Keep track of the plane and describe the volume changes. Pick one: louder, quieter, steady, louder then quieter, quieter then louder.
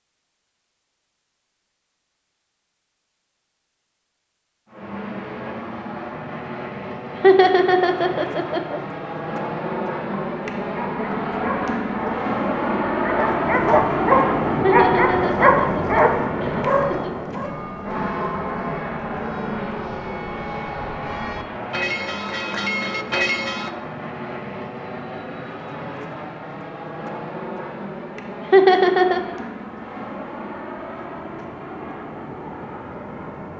louder then quieter.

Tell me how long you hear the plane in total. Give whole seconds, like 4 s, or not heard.
29 s.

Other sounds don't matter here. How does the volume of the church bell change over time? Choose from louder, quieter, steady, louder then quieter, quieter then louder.
louder.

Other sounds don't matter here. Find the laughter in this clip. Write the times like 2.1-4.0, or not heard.
7.2-8.8, 14.6-17.1, 28.5-29.2.